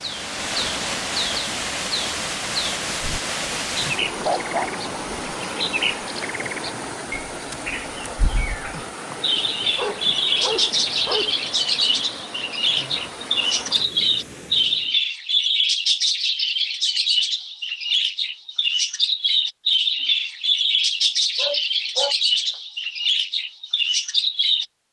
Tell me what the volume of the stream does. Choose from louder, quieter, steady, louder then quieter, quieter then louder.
quieter.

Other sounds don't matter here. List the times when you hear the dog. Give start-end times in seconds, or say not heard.
3.4-5.3, 9.3-11.3, 21.4-22.1.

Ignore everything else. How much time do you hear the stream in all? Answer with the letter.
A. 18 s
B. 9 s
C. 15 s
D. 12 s
C.